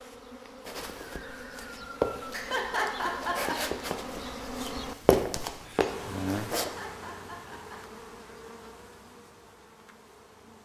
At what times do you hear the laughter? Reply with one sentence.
You can hear the laughter from 2.3 to 3.5 s and from 6.6 to 8.0 s.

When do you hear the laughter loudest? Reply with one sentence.
The loudest moment of the laughter is at 3 seconds.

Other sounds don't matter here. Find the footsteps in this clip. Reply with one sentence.
You can hear the footsteps from 0.7 to 6.7 s.